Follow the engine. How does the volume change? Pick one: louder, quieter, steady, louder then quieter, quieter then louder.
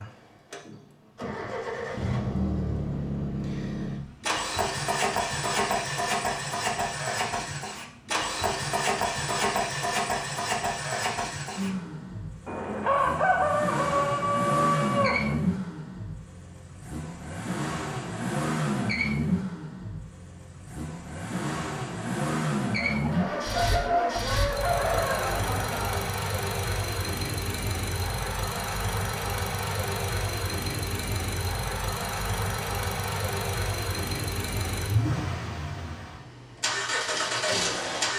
steady.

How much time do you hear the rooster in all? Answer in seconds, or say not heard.
6 s.